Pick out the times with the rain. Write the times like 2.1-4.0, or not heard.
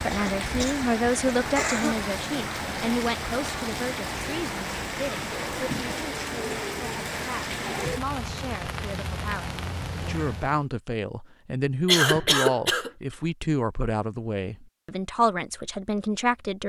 0.0-10.7.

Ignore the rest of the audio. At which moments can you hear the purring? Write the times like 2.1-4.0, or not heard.
not heard.